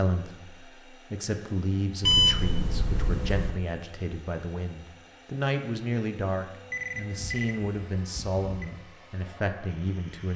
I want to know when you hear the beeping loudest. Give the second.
2 s.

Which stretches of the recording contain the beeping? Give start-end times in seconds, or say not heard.
2.0-3.5, 6.7-8.7.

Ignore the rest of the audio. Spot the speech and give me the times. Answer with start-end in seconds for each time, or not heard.
0.0-10.3.